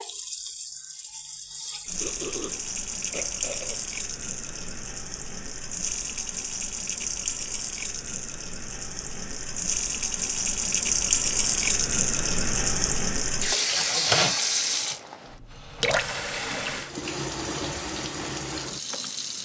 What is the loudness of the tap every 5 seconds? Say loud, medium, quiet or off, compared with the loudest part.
medium, medium, loud, medium.